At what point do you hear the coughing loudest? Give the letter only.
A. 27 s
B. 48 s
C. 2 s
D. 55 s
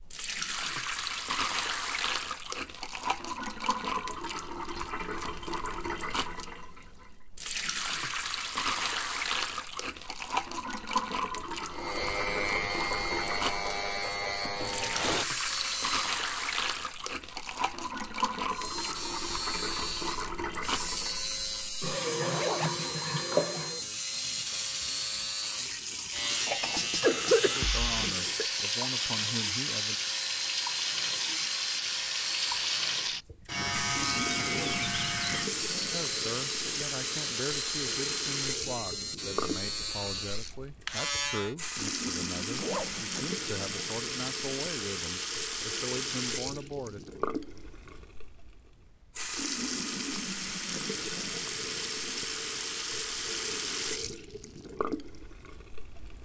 A.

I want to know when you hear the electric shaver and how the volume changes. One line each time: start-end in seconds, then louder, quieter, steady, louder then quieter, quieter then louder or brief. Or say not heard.
11.7-16.1 steady
18.5-41.5 steady.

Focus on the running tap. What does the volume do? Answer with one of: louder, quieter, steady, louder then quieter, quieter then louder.
steady.